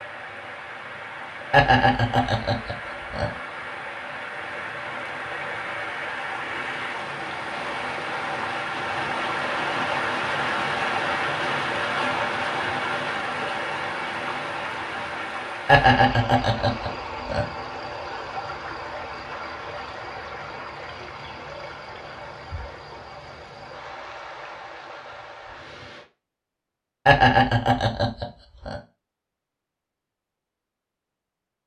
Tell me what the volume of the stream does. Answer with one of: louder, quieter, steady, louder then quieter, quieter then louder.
louder then quieter.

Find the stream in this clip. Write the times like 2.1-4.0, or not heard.
0.0-26.1.